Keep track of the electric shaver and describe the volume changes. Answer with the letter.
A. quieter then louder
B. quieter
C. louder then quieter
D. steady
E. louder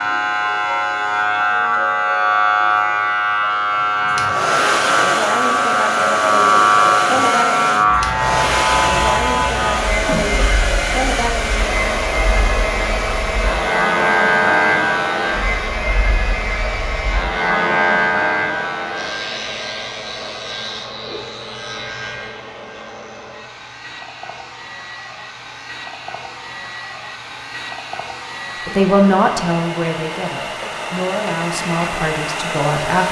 B.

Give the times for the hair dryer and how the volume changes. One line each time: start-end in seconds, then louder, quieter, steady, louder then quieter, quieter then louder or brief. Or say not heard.
4.0-33.0 quieter then louder.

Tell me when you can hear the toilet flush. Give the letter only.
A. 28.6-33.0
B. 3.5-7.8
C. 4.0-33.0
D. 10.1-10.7
D.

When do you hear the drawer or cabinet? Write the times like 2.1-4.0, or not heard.
not heard.